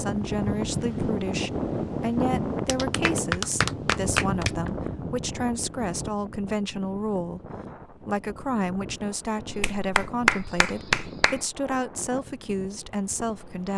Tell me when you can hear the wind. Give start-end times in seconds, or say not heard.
0.0-13.7.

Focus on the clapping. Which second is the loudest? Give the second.
10 s.